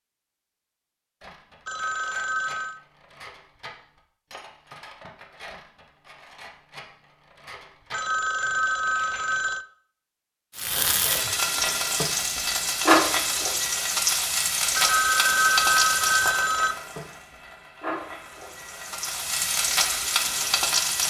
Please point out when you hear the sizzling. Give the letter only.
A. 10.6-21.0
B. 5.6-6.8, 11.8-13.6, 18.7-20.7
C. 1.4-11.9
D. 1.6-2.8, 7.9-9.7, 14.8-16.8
A.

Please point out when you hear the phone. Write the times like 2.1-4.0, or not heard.
1.6-2.8, 7.9-9.7, 14.8-16.8.